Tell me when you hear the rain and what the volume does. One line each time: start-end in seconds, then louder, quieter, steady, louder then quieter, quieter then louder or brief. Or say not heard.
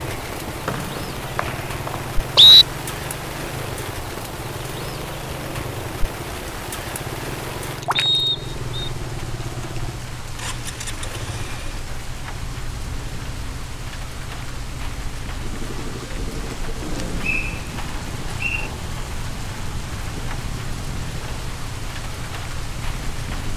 0.0-23.5 steady.